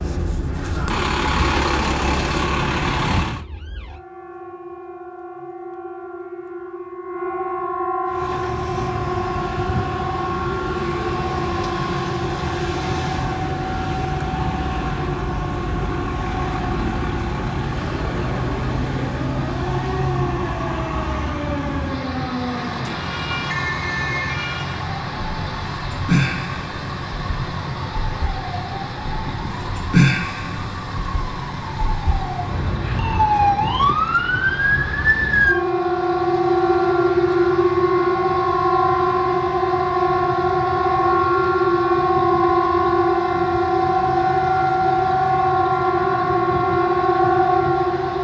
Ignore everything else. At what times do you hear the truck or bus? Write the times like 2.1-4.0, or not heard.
0.0-3.5, 8.1-48.1.